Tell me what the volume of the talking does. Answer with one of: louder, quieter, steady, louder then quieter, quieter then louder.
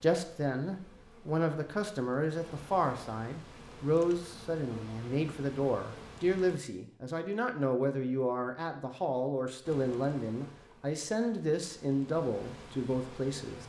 steady.